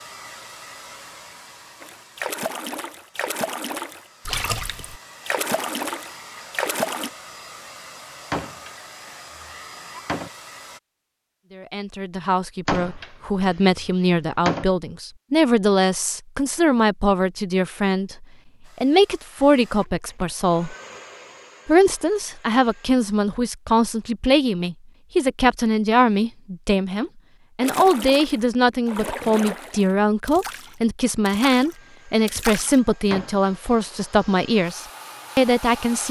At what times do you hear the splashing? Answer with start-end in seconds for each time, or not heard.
1.8-7.1, 27.6-32.8.